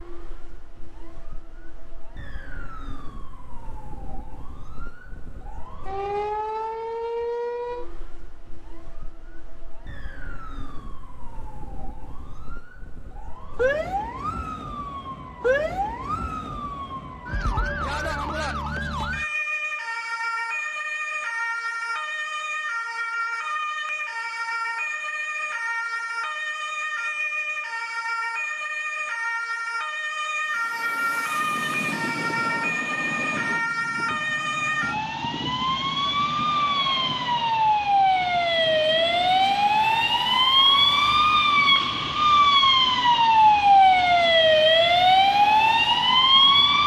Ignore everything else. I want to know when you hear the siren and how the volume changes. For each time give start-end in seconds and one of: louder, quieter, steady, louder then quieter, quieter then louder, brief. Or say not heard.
0.0-46.8 louder.